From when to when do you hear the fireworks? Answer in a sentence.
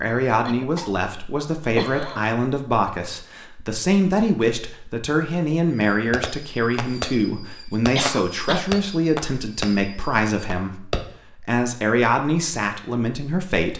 The fireworks can be heard from 5.8 to 11.1 s.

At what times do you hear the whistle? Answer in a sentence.
You can't hear the whistle here.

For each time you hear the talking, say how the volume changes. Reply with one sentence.
You can hear the talking from 0.0 to 13.7 s, at a steady volume.